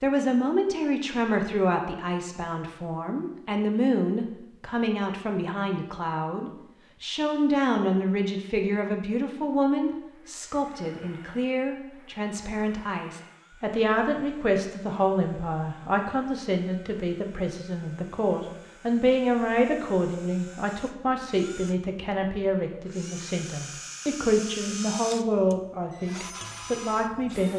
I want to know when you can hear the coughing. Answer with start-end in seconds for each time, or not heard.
not heard.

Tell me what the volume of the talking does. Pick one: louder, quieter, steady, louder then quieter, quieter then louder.
steady.